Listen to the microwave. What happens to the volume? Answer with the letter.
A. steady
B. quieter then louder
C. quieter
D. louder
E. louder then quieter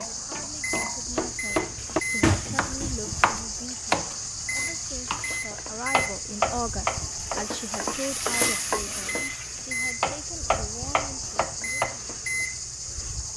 A.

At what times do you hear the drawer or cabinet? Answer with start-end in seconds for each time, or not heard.
1.8-3.4.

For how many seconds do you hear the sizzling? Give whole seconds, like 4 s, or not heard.
13 s.